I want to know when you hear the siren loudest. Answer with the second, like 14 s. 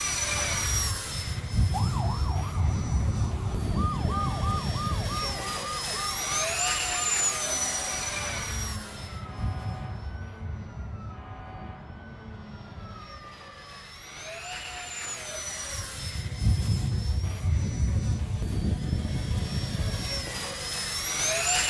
4 s.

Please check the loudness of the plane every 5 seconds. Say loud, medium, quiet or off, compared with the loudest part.
loud, loud, quiet, loud, loud.